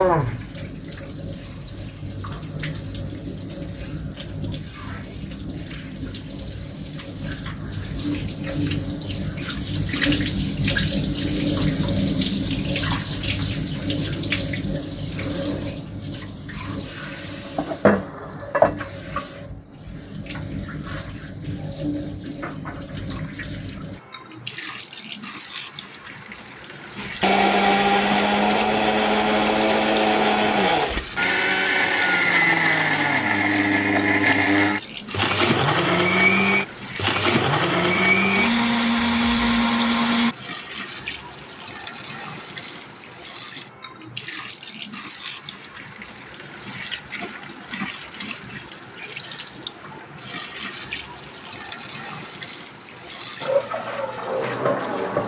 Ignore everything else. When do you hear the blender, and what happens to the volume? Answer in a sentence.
You can hear the blender from 26.9 to 40.4 s, at a steady volume.